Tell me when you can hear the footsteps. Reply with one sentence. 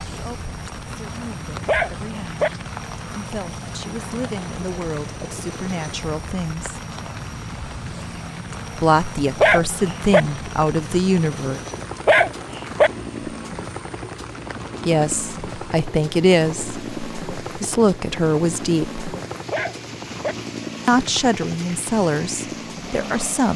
You can't hear the footsteps here.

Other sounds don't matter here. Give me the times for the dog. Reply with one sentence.
You can hear the dog from 1.6 to 2.5 s, from 9.4 to 10.2 s, from 12.1 to 12.9 s and from 19.5 to 20.4 s.